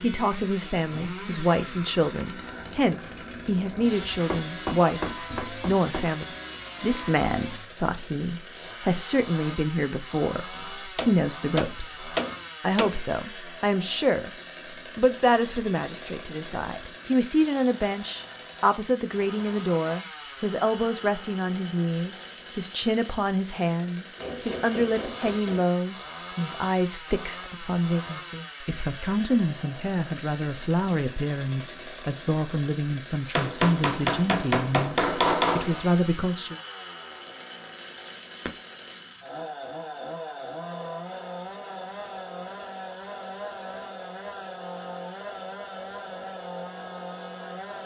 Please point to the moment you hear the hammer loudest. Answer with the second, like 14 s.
35 s.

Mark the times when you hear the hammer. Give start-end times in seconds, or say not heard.
4.1-6.1, 10.9-13.0, 24.1-25.6, 33.4-35.9.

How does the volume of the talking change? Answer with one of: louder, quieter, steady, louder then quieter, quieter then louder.
steady.